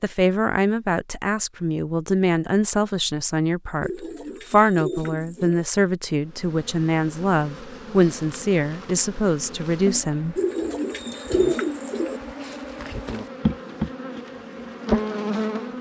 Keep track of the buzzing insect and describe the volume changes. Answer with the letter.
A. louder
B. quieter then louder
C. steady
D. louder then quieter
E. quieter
A.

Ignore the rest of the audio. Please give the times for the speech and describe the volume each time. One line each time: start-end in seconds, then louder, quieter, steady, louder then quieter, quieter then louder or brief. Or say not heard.
0.0-10.4 steady.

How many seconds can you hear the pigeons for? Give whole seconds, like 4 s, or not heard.
4 s.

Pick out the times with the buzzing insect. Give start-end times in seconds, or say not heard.
6.2-15.7.